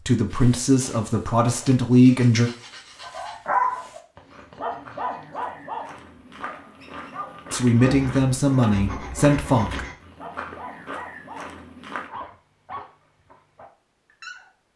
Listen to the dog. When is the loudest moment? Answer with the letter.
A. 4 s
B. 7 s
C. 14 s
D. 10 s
A.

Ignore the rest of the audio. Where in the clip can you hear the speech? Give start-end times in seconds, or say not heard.
0.1-2.5, 7.5-9.8.